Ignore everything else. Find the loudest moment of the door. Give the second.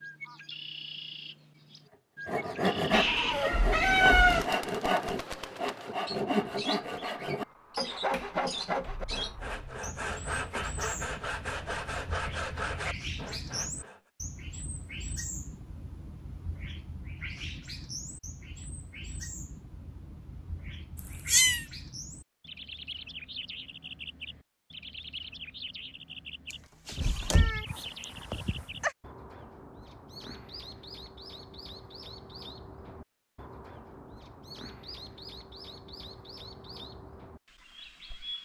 27 s.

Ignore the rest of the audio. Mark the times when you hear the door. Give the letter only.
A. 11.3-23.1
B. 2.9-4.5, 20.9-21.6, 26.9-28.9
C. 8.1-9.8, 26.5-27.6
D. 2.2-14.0
C.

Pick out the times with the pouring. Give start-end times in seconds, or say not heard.
not heard.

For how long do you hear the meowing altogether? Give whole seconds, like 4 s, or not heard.
4 s.